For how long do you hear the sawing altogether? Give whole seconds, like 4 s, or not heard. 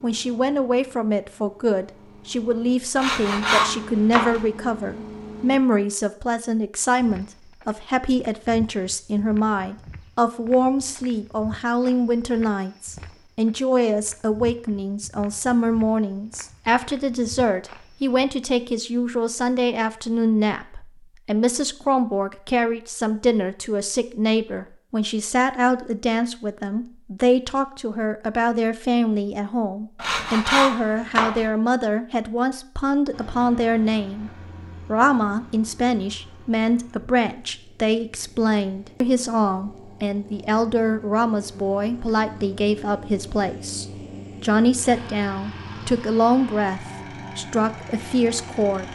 3 s.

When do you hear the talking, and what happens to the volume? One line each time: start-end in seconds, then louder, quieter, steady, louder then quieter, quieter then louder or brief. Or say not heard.
0.0-48.9 steady.